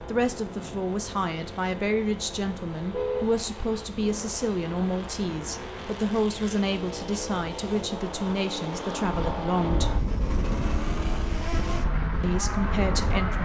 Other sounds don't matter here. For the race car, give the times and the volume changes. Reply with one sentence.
The race car can be heard from 0.0 to 13.4 s, getting louder.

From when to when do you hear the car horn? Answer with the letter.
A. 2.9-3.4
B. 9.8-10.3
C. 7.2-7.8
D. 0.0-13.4
A.